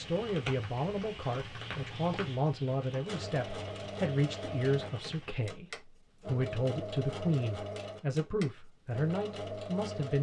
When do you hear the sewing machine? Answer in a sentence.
The sewing machine can be heard from 2.9 to 10.1 s.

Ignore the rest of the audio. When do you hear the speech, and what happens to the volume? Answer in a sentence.
You can hear the speech from 0.0 to 10.1 s, at a steady volume.